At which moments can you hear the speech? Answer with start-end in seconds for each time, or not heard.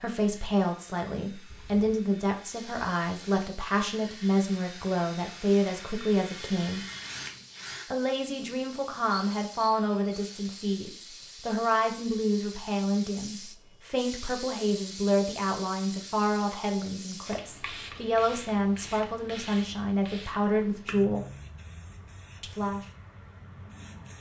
0.0-6.8, 7.9-21.2, 22.4-22.9.